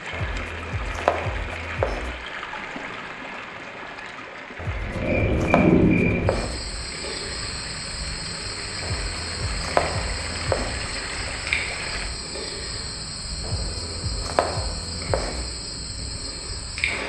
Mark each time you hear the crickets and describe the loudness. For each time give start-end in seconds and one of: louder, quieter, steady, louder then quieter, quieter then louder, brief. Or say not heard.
4.8-17.0 quieter.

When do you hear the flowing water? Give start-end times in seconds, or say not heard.
0.0-12.1.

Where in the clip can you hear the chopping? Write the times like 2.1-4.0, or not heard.
0.1-2.1, 4.5-6.6, 8.8-10.8, 13.4-15.4.